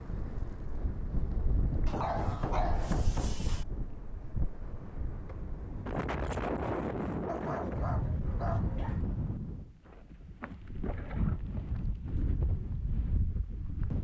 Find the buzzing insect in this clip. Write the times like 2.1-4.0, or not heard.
not heard.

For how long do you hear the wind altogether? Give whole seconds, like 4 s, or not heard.
14 s.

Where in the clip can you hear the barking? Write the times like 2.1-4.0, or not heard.
1.9-3.6, 7.2-9.0.